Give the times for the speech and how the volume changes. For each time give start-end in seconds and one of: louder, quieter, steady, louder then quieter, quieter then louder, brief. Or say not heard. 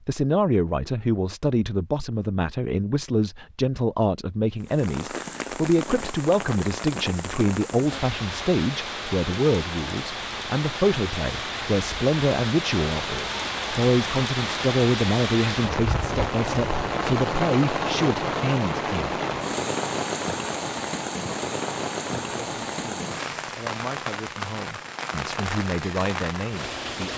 0.1-19.1 steady
22.1-27.1 louder.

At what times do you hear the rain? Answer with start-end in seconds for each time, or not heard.
4.6-27.1.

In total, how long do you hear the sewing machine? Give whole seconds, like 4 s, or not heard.
not heard.